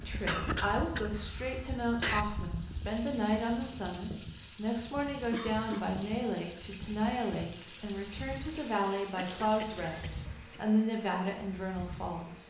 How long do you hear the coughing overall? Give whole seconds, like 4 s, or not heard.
4 s.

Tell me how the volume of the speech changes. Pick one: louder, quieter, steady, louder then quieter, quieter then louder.
steady.